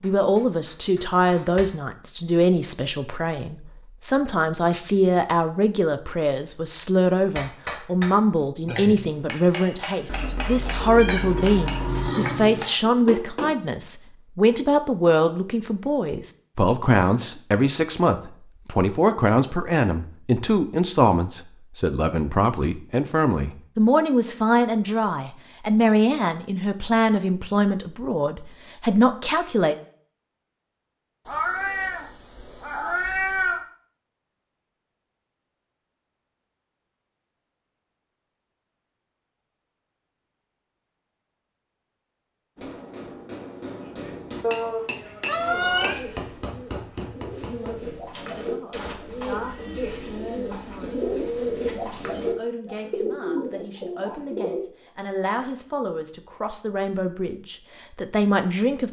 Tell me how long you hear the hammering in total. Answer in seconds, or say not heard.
14 s.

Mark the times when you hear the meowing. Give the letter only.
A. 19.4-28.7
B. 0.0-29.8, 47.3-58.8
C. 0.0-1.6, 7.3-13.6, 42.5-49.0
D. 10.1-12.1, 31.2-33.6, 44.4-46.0
D.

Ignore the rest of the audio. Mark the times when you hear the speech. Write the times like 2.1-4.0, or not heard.
0.0-29.8, 47.3-58.8.